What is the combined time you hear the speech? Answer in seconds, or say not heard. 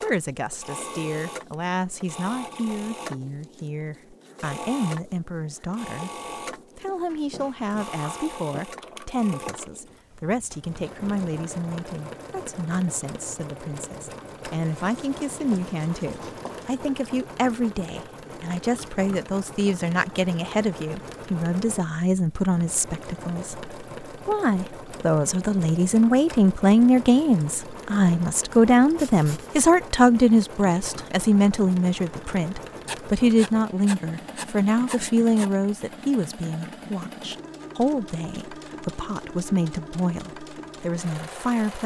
41 s.